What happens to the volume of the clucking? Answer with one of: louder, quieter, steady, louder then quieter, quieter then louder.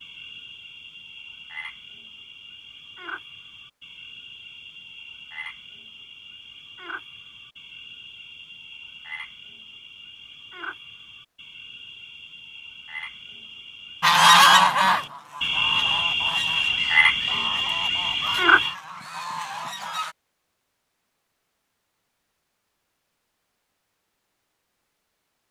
quieter.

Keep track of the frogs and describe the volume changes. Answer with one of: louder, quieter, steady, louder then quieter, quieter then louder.
louder.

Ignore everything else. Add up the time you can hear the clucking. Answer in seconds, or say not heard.
6 s.